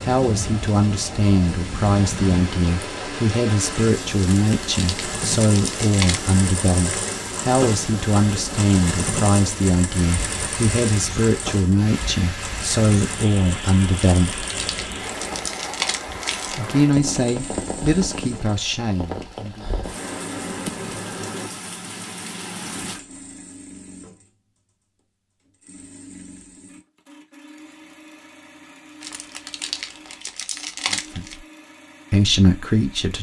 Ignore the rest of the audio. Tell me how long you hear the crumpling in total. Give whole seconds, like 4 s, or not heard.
7 s.